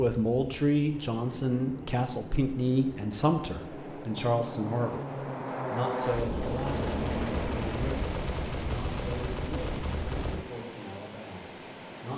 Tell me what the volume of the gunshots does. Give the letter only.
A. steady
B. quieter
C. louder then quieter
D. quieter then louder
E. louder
A.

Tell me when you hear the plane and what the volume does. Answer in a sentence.
The plane can be heard from 0.1 to 12.1 s, getting louder then quieter.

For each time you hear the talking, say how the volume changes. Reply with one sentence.
The talking can be heard from 0.0 to 12.1 s, getting quieter.